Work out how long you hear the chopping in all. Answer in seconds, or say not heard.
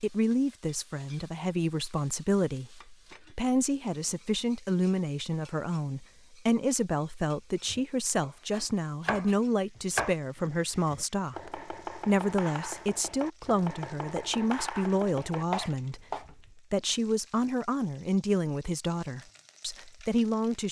8 s.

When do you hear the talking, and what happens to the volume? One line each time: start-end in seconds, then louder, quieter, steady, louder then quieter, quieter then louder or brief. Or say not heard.
0.0-20.6 steady.